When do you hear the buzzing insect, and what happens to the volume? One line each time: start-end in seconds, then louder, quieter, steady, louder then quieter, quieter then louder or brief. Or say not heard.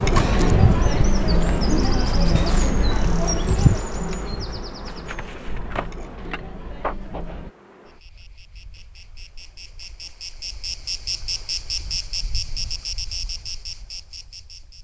0.0-14.7 quieter then louder.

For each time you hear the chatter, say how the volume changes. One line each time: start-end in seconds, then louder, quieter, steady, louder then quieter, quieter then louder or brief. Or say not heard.
0.0-7.5 quieter.